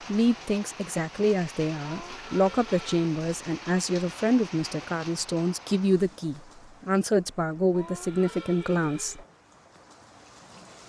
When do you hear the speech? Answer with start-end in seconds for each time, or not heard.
0.1-9.2.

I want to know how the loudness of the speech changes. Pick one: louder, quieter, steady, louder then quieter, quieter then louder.
steady.